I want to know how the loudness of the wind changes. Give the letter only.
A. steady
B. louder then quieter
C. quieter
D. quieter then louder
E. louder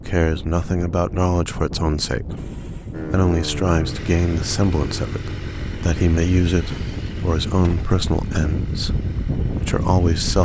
E.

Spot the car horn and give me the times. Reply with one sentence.
You can hear the car horn from 2.4 to 3.0 s.